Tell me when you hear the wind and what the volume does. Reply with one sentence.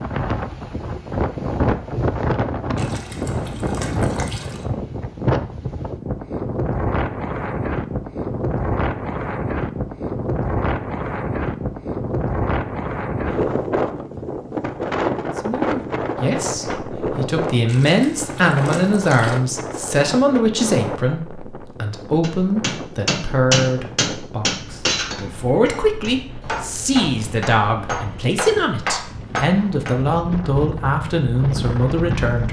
The wind can be heard from 0.0 to 32.4 s, getting quieter.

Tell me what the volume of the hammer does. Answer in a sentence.
The volume of the hammer goes down, then up.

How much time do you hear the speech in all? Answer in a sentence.
You can hear the speech for 17 seconds altogether.